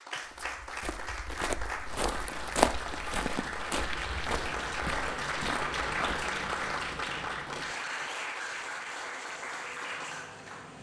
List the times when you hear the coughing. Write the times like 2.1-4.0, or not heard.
not heard.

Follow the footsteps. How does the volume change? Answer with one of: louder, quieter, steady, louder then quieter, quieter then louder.
louder then quieter.